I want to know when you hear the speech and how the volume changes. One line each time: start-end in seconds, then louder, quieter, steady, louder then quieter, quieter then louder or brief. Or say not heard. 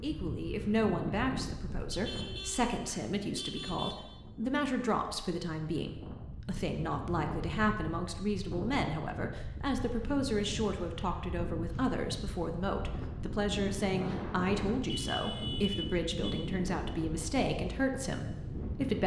0.0-19.0 steady.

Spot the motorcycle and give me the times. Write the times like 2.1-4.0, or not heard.
not heard.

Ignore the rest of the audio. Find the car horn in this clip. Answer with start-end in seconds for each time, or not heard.
1.9-4.0, 14.8-16.4.